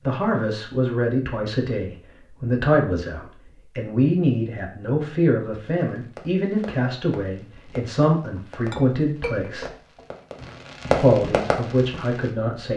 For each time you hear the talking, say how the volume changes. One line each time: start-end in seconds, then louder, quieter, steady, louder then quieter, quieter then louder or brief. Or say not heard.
0.1-9.7 steady
10.8-12.7 brief.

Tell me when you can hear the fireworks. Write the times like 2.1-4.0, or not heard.
5.8-12.3.